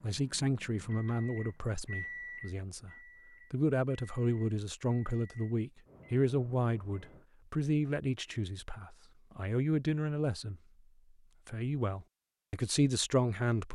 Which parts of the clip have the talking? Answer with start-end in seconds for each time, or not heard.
0.0-2.9, 3.5-10.6, 11.4-13.7.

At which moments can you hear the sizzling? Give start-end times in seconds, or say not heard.
not heard.